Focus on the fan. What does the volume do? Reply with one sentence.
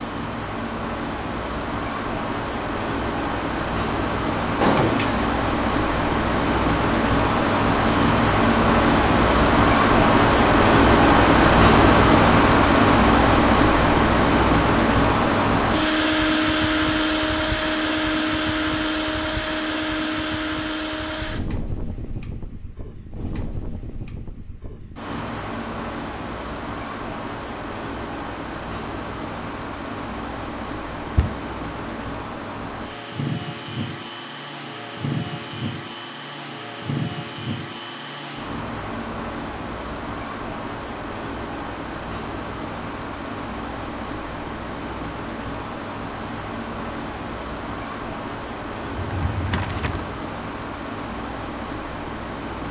The loudness of the fan goes down.